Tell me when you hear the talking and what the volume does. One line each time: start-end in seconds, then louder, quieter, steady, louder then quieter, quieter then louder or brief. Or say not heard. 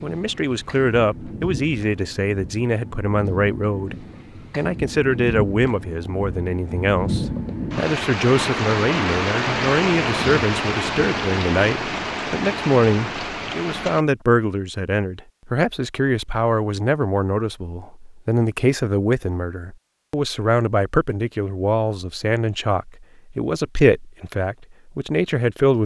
0.0-25.8 steady.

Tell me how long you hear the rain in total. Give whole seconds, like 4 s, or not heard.
14 s.